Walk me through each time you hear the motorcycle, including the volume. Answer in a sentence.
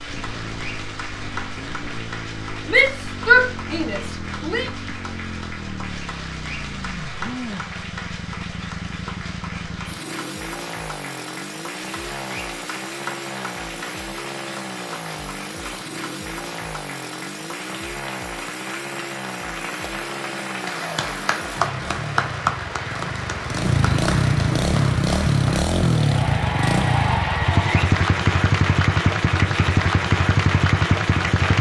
You can hear the motorcycle from 0.0 to 31.5 s, getting louder.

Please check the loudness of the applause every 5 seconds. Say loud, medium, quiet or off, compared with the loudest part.
medium, medium, medium, medium, loud, loud, loud.